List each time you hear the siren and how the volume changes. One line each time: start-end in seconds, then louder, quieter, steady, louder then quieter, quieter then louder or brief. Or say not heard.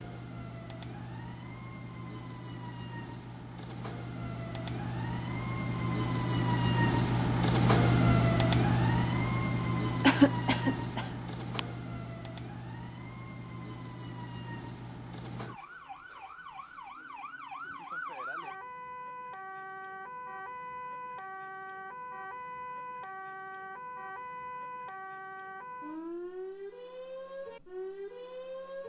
0.0-28.8 louder then quieter.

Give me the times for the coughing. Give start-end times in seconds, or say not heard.
10.0-11.6.